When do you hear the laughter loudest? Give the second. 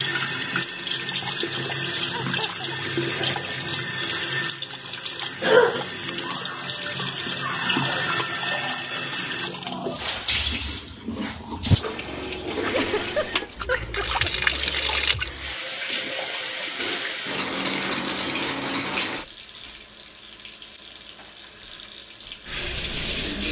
13 s.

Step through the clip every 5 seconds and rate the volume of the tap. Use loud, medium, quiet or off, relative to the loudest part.
loud, loud, loud, loud, medium.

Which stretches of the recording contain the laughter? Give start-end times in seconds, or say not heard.
2.1-2.8, 12.7-14.6.